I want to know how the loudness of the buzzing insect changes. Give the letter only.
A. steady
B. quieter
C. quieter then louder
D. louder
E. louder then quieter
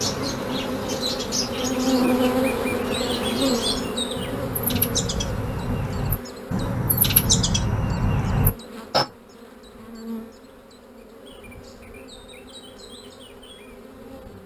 B.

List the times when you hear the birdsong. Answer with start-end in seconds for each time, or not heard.
0.0-9.1.